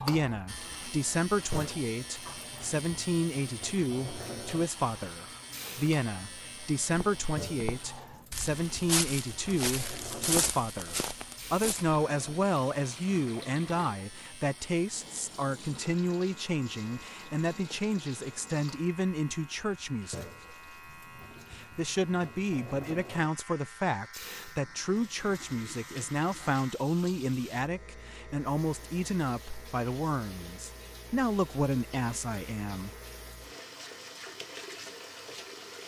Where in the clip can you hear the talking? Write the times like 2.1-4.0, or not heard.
0.0-20.3, 21.5-32.9.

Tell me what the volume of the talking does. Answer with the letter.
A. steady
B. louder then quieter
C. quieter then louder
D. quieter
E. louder
A.